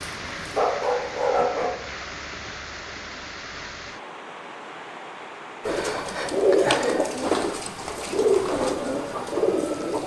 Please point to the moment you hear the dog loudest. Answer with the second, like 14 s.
1 s.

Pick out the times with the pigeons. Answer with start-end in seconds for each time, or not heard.
5.7-10.0.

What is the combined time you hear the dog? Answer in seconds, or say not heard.
2 s.